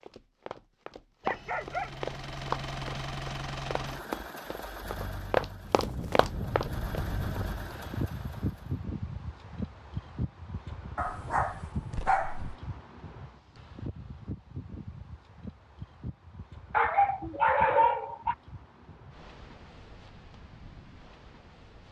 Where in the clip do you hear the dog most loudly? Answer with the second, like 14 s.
18 s.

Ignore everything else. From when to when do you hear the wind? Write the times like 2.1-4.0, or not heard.
5.7-21.8.